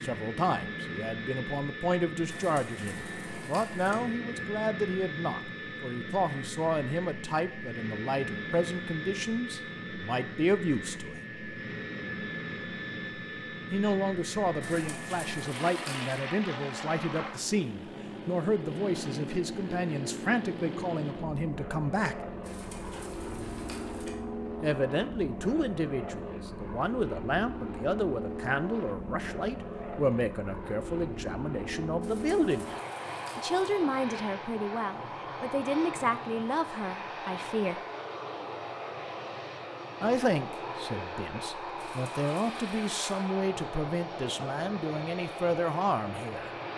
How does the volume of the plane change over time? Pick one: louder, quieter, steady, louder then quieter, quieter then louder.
steady.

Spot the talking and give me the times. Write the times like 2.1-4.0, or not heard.
0.0-11.2, 13.7-22.1, 24.6-32.6, 33.4-37.8, 40.0-46.5.